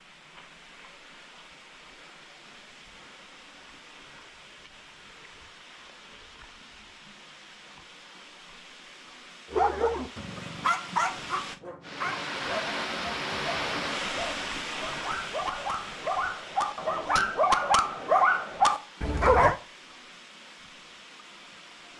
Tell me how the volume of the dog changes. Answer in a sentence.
The loudness of the dog goes down, then up.